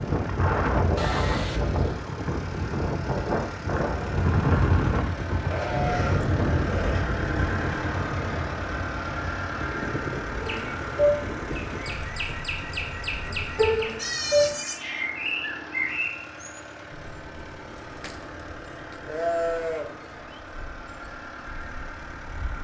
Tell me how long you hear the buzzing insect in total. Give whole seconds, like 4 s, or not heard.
not heard.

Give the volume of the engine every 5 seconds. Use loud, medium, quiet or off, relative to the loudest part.
medium, loud, medium, medium, medium.